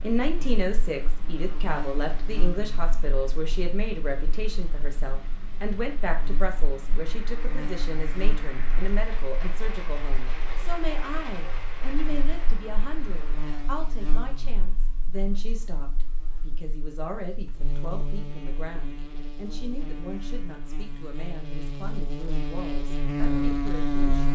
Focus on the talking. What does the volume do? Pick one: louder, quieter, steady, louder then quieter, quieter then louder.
quieter.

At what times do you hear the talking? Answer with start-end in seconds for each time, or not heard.
0.0-24.3.